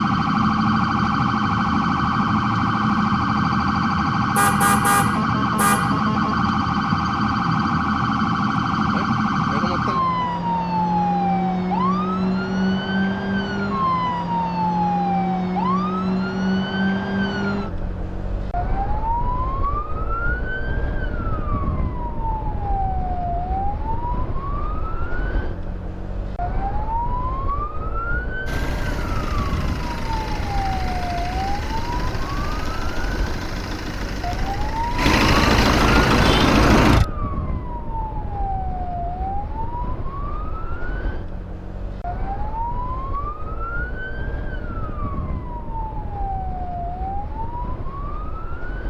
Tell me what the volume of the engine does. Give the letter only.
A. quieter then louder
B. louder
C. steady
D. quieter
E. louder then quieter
B.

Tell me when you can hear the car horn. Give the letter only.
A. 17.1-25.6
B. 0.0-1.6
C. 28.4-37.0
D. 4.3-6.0
D.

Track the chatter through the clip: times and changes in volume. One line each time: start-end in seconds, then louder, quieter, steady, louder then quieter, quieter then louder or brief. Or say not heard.
not heard.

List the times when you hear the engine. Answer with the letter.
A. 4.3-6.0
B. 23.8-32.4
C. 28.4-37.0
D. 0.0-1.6
C.